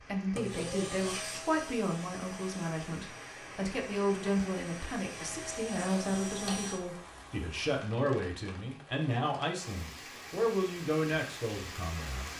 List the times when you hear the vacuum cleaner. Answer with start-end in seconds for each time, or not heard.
0.0-6.8.